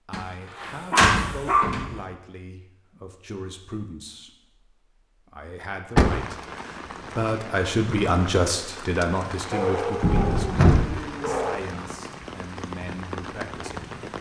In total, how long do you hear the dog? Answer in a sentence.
You can hear the dog for 3 seconds altogether.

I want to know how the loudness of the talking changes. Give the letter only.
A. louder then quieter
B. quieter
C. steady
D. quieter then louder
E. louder
A.